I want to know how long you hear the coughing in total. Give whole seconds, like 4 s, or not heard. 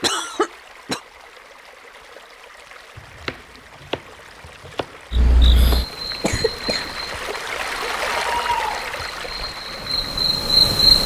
2 s.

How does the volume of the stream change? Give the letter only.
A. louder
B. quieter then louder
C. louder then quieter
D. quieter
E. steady
A.